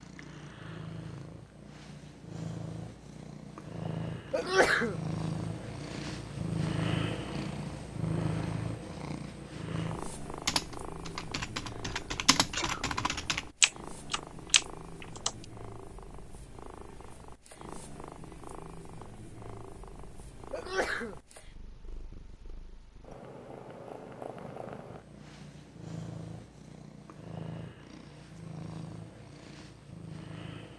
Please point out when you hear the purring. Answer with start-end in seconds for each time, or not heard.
0.0-30.7.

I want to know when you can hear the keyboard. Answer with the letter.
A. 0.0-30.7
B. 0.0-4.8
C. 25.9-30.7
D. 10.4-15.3
D.